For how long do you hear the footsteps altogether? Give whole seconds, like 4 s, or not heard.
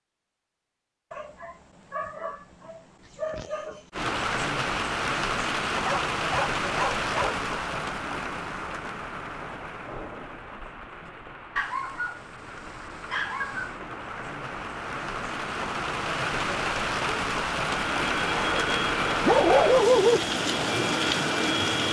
not heard.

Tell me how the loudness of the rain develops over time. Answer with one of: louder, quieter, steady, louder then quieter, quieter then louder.
quieter then louder.